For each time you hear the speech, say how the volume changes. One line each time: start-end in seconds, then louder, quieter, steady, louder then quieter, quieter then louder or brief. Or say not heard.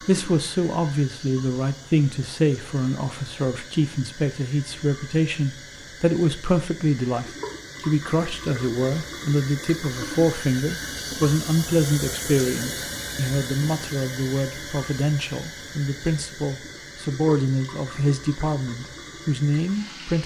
0.1-20.2 steady.